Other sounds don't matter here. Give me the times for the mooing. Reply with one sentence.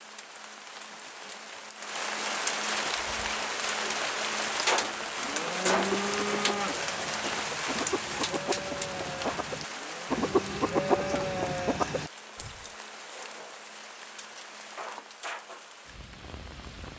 The mooing can be heard from 5.2 to 6.8 s and from 9.7 to 11.2 s.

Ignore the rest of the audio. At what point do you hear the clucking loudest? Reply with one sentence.
The volume of the clucking peaks at 11 seconds.